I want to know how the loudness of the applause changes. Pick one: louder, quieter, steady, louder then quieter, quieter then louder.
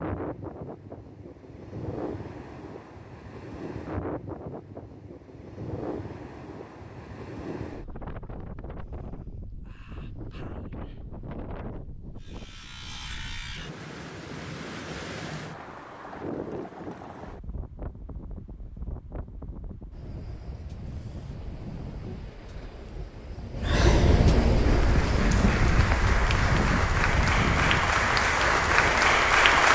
louder.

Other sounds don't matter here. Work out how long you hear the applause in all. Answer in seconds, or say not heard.
5 s.